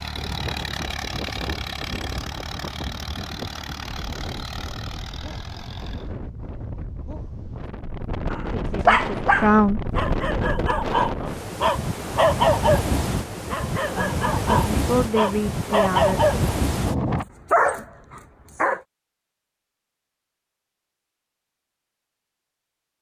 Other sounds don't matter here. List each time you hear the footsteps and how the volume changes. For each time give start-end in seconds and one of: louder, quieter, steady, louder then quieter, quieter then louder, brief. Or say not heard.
not heard.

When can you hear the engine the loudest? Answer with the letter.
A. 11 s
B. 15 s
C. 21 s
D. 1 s
D.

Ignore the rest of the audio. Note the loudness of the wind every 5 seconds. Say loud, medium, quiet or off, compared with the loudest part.
medium, medium, loud, loud, off.